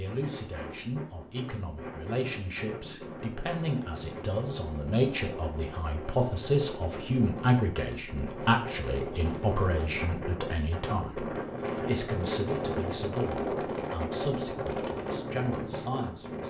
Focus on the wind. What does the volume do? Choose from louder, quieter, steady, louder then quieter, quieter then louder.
louder.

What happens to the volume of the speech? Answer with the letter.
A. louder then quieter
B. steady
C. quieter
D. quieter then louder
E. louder
A.